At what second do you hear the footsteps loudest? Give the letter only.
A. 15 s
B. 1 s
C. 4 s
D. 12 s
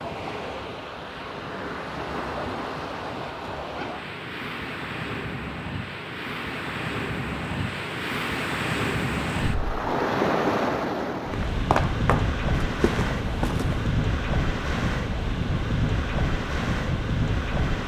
D.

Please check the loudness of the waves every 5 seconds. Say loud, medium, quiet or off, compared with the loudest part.
medium, loud, loud, loud.